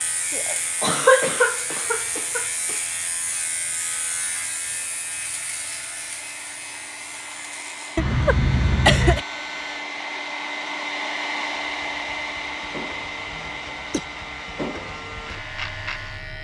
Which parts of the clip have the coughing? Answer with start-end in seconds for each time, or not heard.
0.3-2.8, 8.0-9.2, 13.3-14.1.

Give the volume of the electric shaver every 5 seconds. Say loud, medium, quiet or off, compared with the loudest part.
loud, medium, medium, loud.